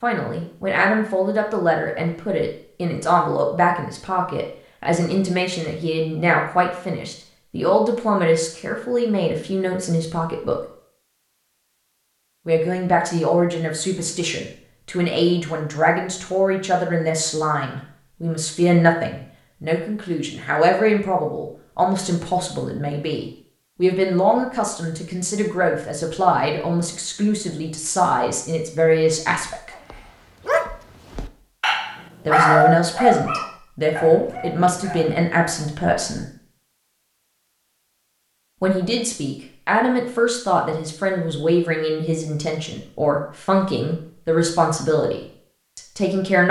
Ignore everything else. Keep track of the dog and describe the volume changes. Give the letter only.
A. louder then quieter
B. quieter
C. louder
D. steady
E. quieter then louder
A.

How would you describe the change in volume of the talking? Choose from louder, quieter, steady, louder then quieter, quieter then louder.
steady.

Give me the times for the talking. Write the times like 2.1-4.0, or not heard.
0.0-10.6, 12.4-29.7, 32.2-36.3, 38.6-46.4.